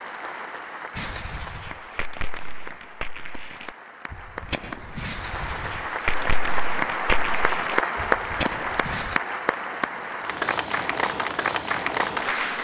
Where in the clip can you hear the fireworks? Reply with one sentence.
You can hear the fireworks from 0.9 to 9.2 s.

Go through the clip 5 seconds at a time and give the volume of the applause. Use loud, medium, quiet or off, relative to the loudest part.
quiet, loud, loud.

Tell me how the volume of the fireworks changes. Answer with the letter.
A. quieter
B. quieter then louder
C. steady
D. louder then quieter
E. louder
E.